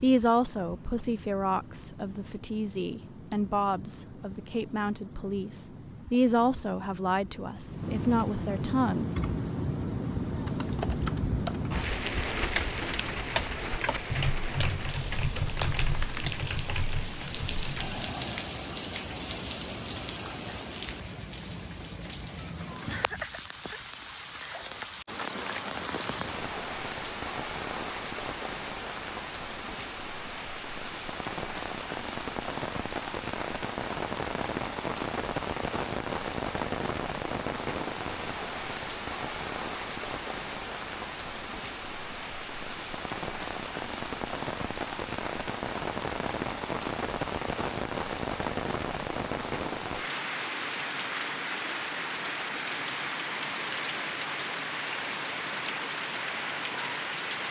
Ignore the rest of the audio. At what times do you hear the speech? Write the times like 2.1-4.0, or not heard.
0.0-9.1.